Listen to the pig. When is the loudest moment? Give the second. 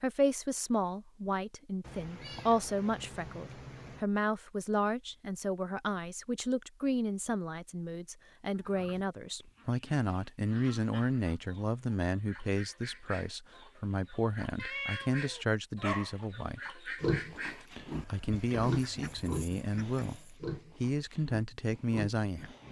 17 s.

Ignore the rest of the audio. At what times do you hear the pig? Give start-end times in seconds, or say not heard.
17.0-22.6.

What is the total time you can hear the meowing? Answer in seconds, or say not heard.
4 s.